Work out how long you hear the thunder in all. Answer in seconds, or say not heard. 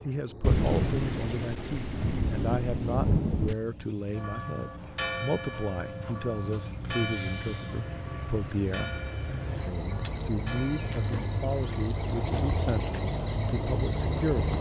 3 s.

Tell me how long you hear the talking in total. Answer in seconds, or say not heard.
14 s.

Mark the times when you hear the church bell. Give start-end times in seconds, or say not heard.
4.2-11.9.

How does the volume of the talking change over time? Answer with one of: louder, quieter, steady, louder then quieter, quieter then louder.
steady.